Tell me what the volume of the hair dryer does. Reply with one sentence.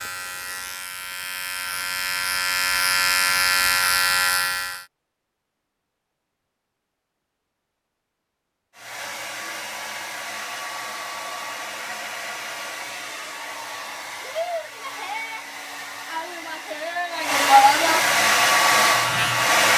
The volume of the hair dryer goes up.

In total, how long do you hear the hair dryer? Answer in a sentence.
You can hear the hair dryer for 11 seconds altogether.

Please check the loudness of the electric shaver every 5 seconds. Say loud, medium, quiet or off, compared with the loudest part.
loud, off, off, medium.